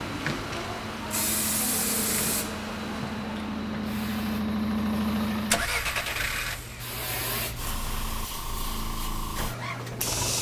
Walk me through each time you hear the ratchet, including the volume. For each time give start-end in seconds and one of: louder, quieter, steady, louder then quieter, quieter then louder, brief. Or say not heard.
not heard.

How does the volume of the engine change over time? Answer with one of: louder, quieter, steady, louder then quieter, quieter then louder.
louder then quieter.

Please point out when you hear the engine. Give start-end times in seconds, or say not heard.
0.0-10.3.